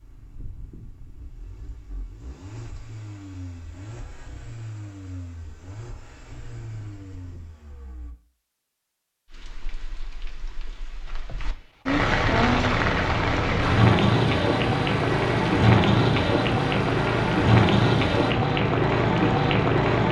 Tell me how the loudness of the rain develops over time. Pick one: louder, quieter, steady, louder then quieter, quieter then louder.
louder.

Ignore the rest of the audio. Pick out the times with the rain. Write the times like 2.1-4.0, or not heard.
9.2-20.0.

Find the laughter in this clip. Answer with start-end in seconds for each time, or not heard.
not heard.